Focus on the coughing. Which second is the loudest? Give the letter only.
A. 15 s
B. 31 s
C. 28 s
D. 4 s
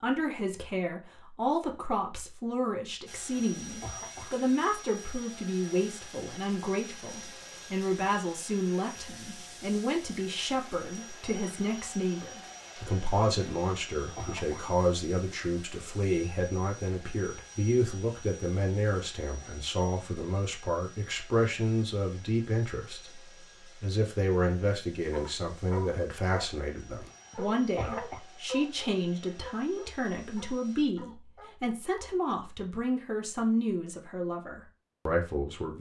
C.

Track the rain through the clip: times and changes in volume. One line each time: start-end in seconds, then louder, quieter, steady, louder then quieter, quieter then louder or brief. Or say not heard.
not heard.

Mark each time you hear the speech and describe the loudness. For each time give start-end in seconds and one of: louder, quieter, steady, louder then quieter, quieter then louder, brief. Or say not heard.
0.0-35.7 steady.